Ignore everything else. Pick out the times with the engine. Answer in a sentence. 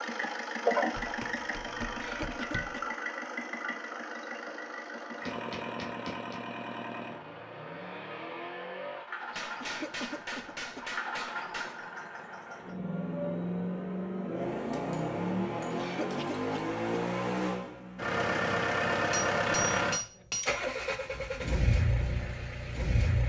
The engine can be heard from 0.0 to 23.2 s.